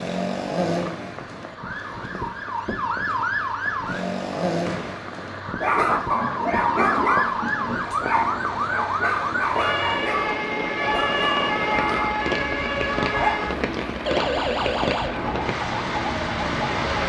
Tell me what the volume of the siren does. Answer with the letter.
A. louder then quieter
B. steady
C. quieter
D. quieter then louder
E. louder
B.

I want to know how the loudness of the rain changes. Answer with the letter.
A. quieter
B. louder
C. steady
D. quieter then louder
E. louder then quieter
B.